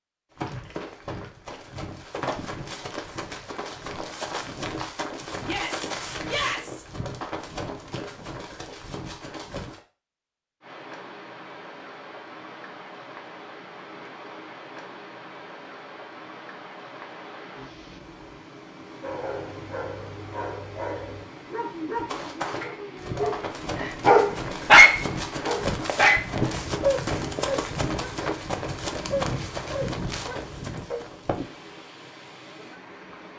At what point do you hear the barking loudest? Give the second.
25 s.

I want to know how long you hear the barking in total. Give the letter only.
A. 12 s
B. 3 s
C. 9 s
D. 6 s
A.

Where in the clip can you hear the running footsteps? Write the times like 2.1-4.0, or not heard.
0.3-9.8, 21.9-31.4.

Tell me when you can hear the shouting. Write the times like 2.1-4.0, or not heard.
5.4-6.8.